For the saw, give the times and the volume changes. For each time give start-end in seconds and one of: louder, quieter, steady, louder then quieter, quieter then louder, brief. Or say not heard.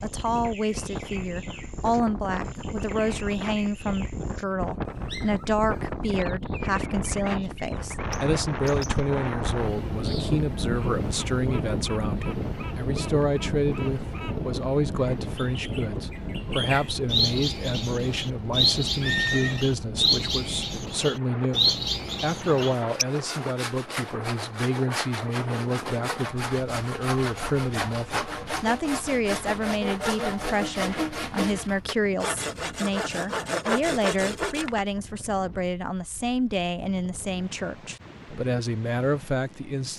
22.6-34.9 louder.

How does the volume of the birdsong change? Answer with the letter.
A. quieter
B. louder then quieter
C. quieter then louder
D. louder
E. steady
D.